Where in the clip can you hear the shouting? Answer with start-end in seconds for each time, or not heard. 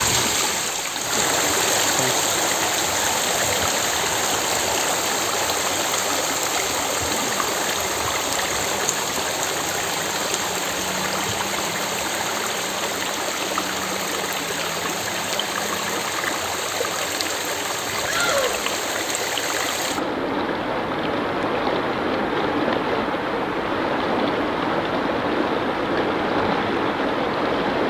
18.1-18.6.